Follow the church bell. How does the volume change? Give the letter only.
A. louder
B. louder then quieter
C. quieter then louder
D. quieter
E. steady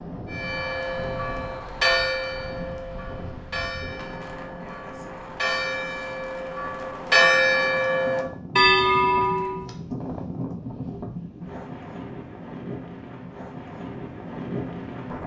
C.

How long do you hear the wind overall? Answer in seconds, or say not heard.
15 s.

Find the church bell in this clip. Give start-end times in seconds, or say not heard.
0.3-9.7.